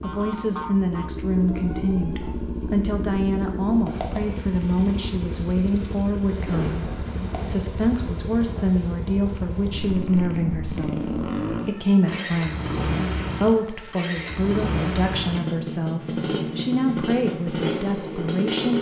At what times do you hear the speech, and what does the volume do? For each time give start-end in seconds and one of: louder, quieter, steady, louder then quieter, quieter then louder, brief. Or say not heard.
0.0-18.7 steady.